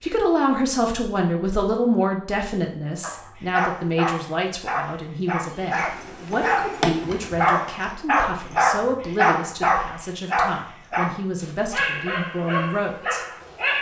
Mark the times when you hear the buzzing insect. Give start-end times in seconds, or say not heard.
5.4-7.8.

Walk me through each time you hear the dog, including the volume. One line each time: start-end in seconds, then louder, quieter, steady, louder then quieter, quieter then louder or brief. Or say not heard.
3.0-13.7 louder then quieter.